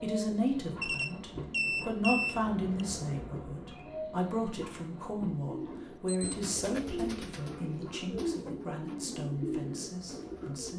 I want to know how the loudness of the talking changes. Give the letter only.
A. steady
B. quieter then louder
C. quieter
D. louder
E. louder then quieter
C.